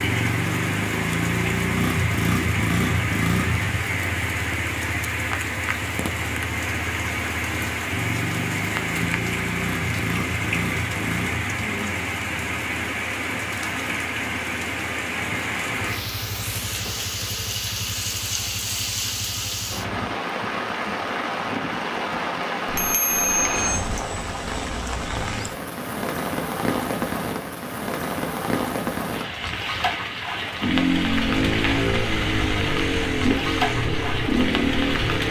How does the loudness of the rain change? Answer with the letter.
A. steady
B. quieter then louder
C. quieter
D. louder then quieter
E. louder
A.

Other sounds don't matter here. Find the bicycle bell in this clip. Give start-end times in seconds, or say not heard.
22.6-23.9.